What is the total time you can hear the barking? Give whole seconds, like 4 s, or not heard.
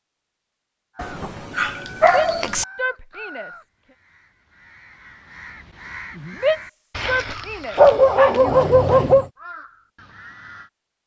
3 s.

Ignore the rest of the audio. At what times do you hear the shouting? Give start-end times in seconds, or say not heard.
2.0-3.5, 6.3-8.6.